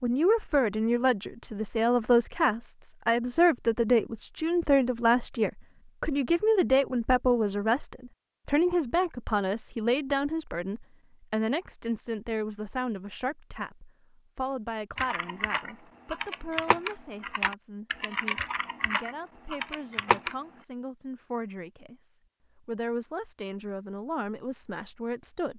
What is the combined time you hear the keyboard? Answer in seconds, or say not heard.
6 s.